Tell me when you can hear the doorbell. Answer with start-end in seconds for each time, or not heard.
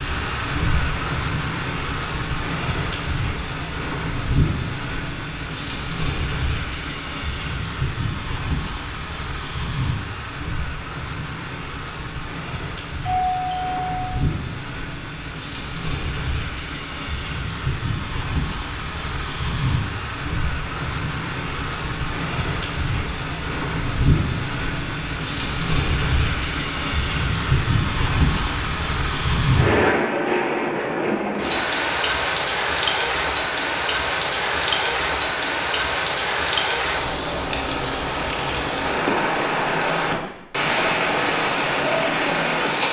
13.0-14.1.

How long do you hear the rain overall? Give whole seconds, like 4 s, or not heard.
43 s.